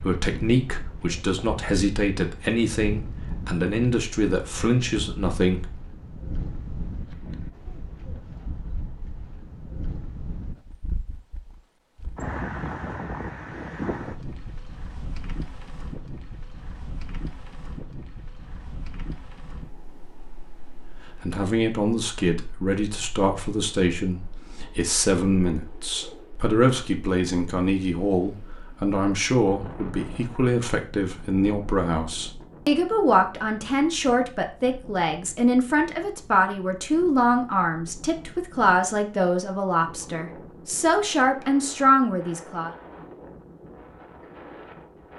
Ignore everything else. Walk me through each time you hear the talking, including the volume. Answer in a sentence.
You can hear the talking from 0.0 to 5.7 s, at a steady volume; and from 21.2 to 42.7 s, at a steady volume.